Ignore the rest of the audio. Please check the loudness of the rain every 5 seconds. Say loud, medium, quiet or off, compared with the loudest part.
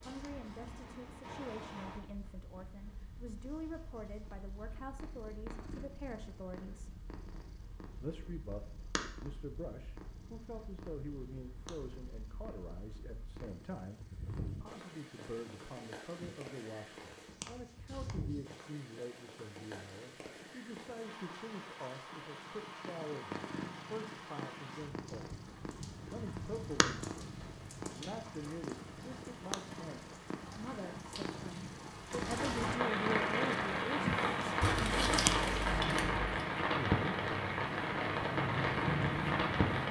quiet, quiet, quiet, quiet, quiet, quiet, loud, loud.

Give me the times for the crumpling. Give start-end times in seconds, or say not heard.
34.6-36.2.